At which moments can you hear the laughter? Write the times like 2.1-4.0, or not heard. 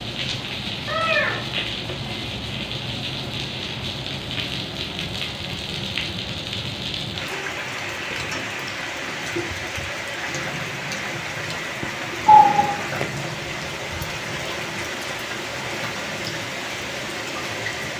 not heard.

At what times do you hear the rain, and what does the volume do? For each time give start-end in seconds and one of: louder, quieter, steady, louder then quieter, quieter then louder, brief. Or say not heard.
0.0-17.9 steady.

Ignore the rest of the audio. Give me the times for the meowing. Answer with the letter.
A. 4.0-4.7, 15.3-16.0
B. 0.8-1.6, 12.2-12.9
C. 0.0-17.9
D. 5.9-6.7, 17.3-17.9
B.